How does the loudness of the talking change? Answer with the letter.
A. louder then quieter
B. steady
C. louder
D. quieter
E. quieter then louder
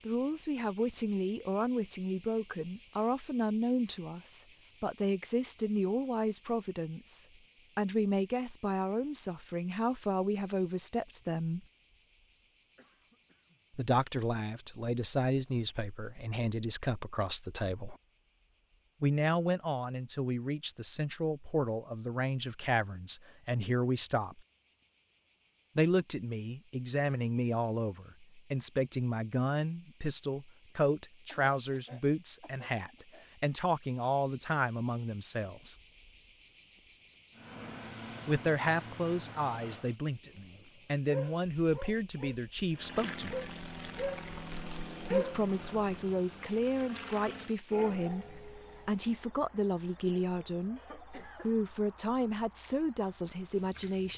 B.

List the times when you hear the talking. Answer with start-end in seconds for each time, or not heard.
0.1-11.6, 13.8-17.9, 19.0-24.4, 25.8-35.8, 38.2-43.4, 45.1-54.1.